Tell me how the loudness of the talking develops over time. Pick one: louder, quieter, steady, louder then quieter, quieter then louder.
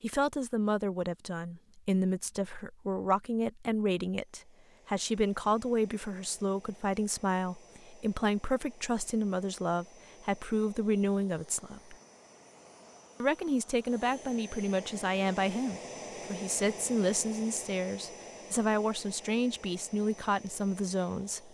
steady.